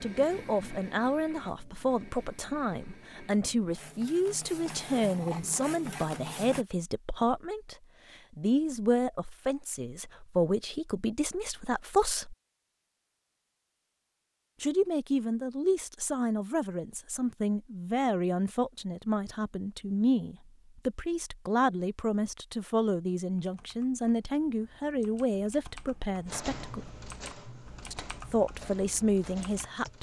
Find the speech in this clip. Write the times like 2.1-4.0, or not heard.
0.0-7.8, 8.3-12.3, 14.6-26.9, 27.9-29.9.